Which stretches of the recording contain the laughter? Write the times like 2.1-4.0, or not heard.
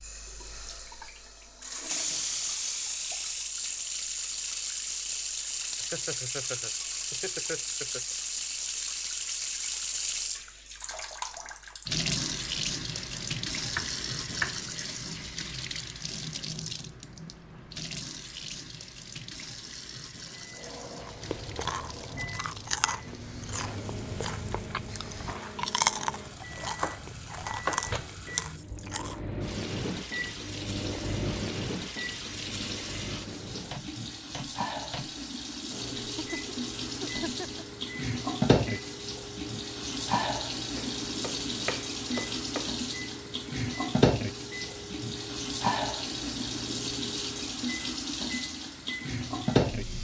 5.7-8.2, 36.1-37.6.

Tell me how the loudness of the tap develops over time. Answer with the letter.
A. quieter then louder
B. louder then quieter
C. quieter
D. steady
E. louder
A.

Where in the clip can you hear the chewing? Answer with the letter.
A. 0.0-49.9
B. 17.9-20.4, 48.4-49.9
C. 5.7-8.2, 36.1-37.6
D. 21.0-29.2
D.